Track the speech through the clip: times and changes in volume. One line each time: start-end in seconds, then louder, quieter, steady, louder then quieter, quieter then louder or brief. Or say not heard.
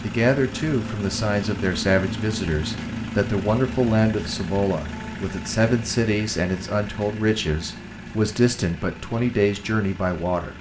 0.0-10.5 steady.